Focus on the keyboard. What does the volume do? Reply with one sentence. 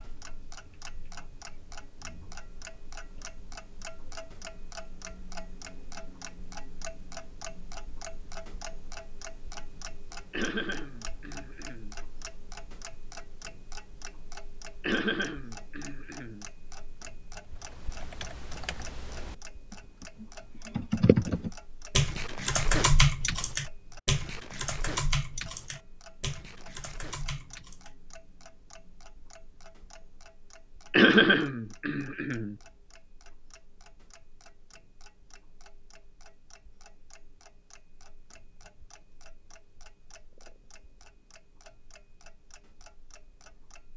The volume of the keyboard goes up, then down.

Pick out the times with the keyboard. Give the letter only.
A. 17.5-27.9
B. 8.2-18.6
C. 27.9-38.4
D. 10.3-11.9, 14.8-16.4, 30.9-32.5
A.